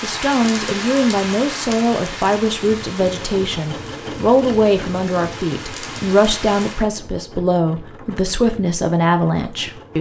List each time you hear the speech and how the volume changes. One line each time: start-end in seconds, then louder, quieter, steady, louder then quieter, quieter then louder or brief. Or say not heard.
0.0-9.9 steady.